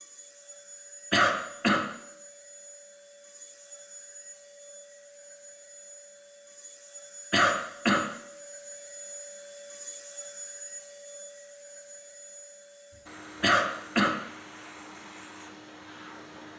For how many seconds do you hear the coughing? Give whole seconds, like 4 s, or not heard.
2 s.